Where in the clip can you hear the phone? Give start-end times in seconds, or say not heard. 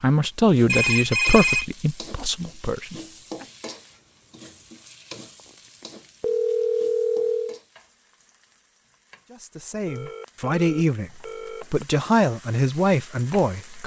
0.7-1.6, 5.8-7.6, 9.8-11.8.